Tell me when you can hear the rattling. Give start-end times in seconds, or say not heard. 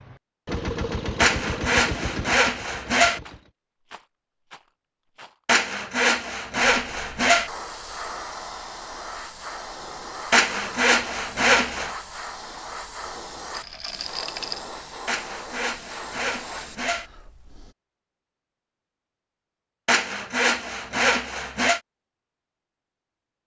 3.2-5.4, 13.5-14.7.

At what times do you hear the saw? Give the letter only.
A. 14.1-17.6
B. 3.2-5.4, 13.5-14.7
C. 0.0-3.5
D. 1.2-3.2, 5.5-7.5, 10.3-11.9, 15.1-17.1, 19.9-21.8
D.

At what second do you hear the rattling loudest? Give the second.
14 s.